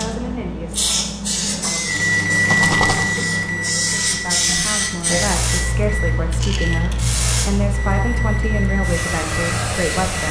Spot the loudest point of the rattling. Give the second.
3 s.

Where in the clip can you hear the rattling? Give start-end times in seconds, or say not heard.
2.5-3.1, 6.3-7.0.